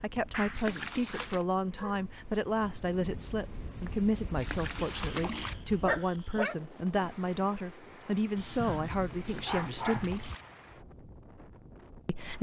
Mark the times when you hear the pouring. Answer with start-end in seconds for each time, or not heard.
0.5-1.4, 4.3-5.5, 9.2-10.4.